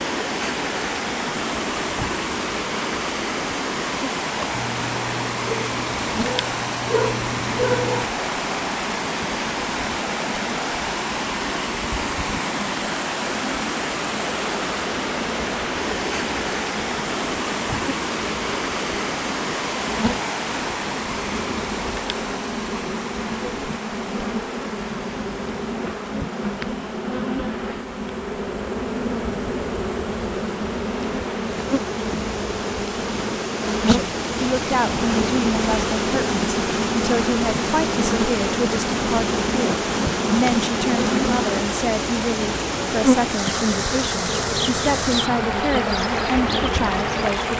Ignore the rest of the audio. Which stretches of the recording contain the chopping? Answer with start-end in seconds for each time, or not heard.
not heard.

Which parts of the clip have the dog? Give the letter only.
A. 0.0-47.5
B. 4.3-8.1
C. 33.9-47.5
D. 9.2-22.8
B.